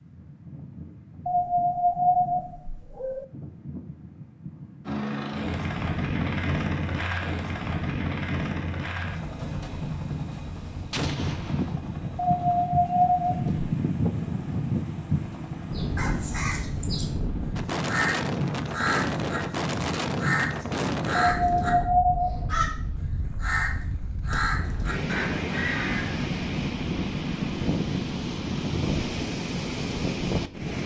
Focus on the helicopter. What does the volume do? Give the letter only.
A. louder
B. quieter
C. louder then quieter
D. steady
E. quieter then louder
B.